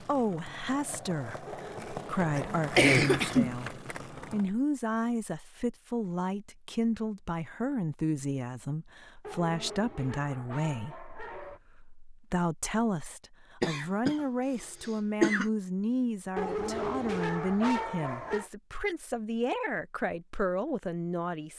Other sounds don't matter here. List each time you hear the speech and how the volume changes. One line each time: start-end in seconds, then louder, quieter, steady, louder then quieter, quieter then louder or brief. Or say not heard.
0.0-21.5 steady.